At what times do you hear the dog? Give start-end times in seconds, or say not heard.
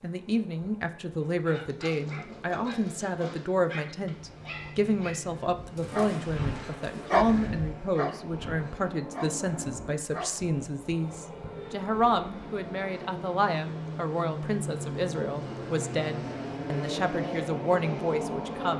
1.2-10.6.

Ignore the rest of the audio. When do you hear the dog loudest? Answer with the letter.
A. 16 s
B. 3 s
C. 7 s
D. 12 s
C.